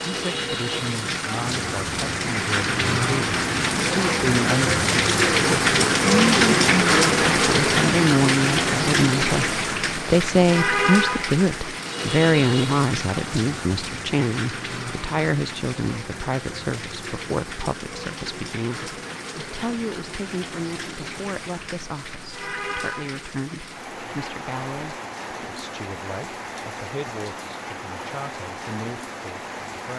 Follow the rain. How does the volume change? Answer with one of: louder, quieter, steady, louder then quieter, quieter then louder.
quieter.